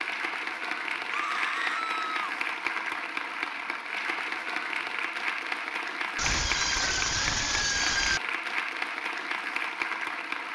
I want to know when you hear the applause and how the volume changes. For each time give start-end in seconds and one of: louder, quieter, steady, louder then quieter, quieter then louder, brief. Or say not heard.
0.0-10.4 steady.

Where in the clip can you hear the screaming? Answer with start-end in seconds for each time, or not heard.
1.1-2.4, 6.2-8.2.